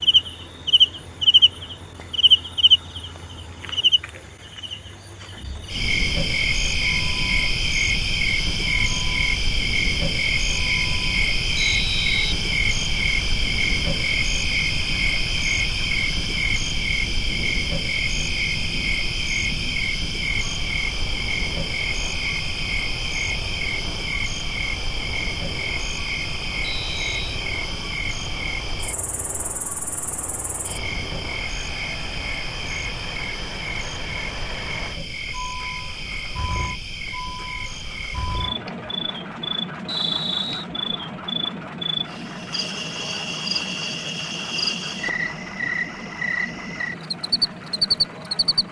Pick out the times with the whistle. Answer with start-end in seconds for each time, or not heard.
11.6-13.1, 26.6-27.4, 39.9-40.6.